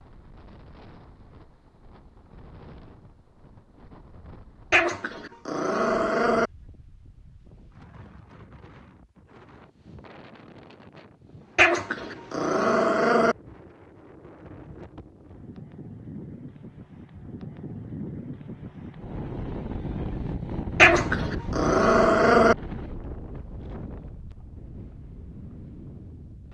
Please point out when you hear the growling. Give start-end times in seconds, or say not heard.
4.7-6.5, 11.6-13.3, 20.8-22.6.